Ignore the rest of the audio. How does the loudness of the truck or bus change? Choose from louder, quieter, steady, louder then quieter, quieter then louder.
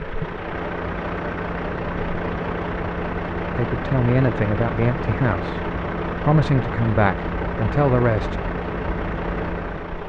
steady.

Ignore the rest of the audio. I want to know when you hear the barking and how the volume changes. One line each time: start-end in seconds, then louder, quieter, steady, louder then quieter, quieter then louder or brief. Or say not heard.
not heard.